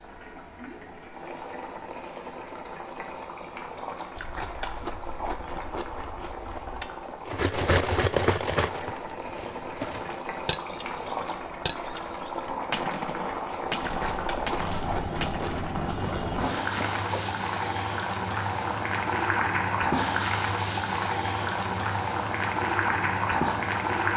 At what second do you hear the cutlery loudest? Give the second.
8 s.